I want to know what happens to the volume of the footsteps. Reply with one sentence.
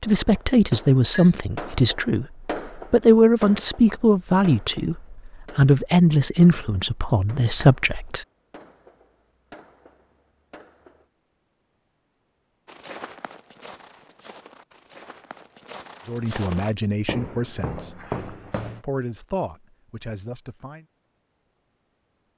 The loudness of the footsteps goes up.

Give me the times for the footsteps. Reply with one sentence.
You can hear the footsteps from 12.7 to 18.9 s.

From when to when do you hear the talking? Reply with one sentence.
You can hear the talking from 0.0 to 8.2 s, from 16.1 to 18.1 s and from 18.8 to 20.9 s.